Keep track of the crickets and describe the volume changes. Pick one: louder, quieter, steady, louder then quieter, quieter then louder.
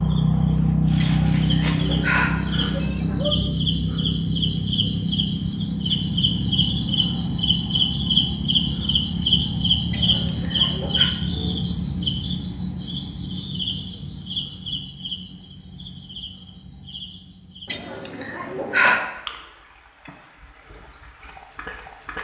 quieter.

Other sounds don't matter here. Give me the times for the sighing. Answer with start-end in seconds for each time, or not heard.
1.0-3.4, 9.9-11.2, 17.6-19.1.